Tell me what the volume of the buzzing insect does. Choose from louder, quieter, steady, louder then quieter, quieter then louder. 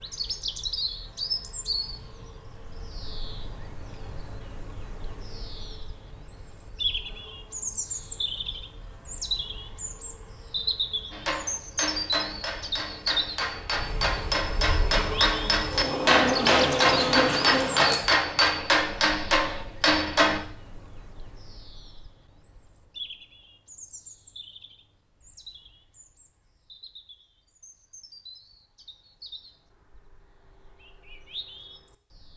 louder.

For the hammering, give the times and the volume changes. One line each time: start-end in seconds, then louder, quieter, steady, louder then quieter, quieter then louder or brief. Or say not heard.
11.1-20.4 louder.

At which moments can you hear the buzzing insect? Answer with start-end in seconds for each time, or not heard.
0.0-18.0.